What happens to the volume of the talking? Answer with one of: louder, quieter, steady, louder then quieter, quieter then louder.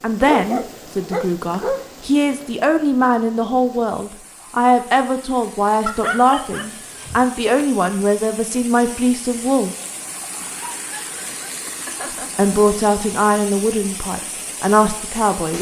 steady.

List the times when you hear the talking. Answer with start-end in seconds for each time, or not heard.
0.0-9.8, 12.3-15.5.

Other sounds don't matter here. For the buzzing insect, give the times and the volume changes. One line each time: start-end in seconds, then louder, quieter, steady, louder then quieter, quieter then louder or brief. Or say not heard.
not heard.